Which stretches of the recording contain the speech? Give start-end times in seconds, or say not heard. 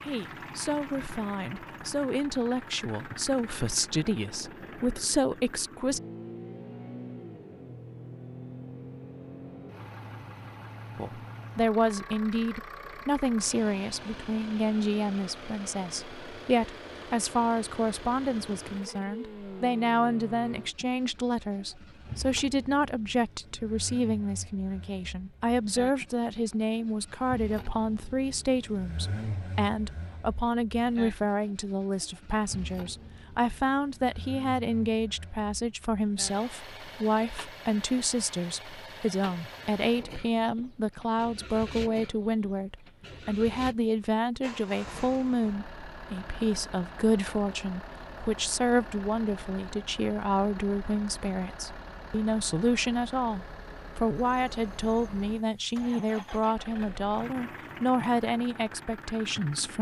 0.0-6.0, 10.9-59.7.